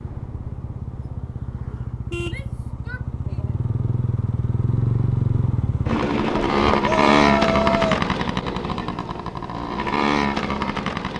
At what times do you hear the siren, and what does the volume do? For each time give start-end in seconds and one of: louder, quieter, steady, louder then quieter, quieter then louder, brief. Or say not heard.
not heard.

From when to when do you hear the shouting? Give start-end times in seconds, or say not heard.
2.2-3.5, 6.8-8.0.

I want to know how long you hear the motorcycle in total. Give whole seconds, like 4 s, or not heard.
11 s.